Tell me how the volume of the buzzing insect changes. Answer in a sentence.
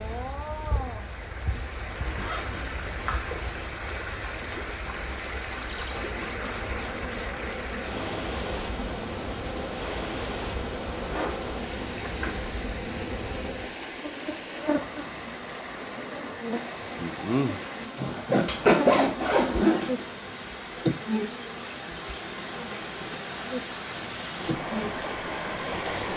The loudness of the buzzing insect goes up.